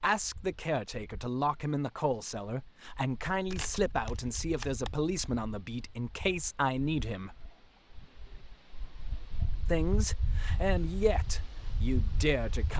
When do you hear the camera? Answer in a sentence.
You can hear the camera from 3.5 to 5.0 s.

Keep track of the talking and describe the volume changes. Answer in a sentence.
The volume of the talking stays about the same.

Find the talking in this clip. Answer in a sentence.
The talking can be heard from 0.0 to 7.4 s and from 9.7 to 12.7 s.